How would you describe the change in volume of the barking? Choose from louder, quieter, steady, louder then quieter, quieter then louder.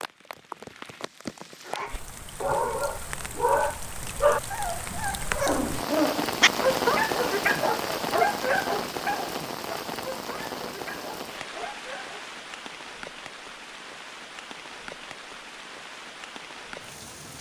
quieter.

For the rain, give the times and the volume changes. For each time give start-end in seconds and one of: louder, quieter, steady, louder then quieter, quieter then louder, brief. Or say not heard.
0.0-17.3 louder then quieter.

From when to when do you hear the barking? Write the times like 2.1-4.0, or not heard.
1.6-12.2.